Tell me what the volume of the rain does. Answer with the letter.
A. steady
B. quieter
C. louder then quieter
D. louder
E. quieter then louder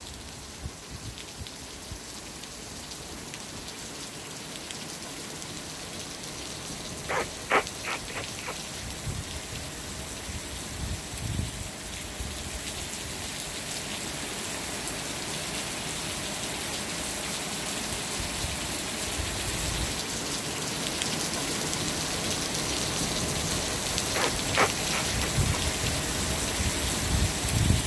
D.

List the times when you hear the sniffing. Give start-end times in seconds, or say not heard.
7.0-8.6, 24.1-25.6.